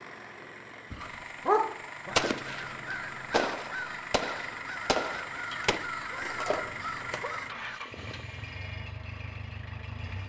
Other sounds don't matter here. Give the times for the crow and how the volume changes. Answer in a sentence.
The crow can be heard from 2.0 to 7.8 s, at a steady volume.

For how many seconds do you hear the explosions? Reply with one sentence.
The explosions can be heard for 4 seconds in total.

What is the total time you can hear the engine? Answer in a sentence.
You can hear the engine for 10 seconds altogether.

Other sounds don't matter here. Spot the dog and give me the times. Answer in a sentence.
The dog can be heard from 0.9 to 2.1 s and from 5.5 to 7.3 s.